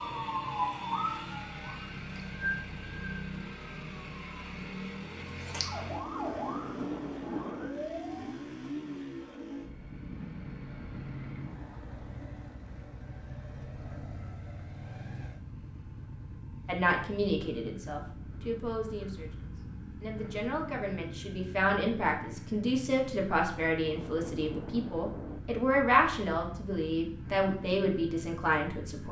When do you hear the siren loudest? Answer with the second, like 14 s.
1 s.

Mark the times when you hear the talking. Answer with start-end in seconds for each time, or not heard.
16.6-29.0.